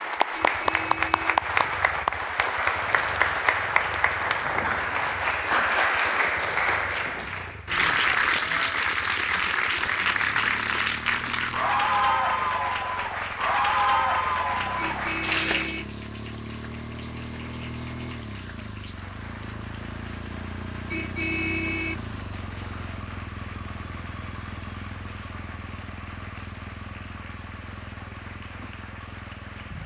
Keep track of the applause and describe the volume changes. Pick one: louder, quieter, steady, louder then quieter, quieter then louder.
quieter.